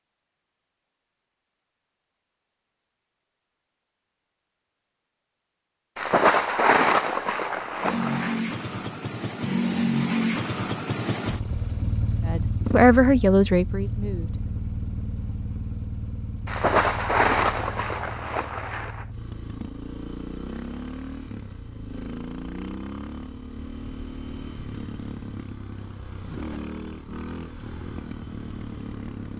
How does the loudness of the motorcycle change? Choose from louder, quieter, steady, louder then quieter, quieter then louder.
quieter.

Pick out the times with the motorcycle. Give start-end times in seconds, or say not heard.
7.8-29.3.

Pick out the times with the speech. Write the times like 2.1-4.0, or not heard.
12.2-14.6.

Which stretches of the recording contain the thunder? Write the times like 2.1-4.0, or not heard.
6.0-8.4, 16.4-19.1.